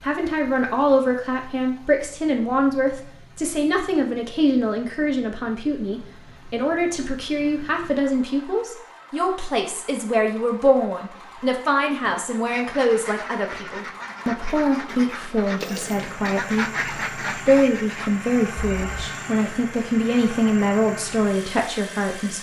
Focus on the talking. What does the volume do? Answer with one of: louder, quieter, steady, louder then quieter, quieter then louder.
steady.